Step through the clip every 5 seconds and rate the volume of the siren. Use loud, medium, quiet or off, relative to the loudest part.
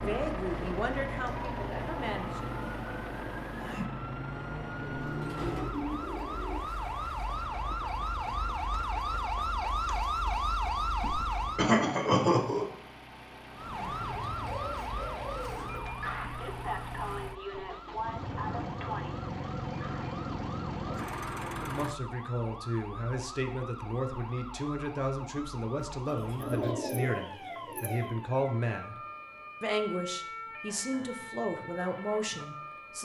medium, loud, loud, medium, medium, medium, medium.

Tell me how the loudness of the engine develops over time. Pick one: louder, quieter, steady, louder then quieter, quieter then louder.
quieter then louder.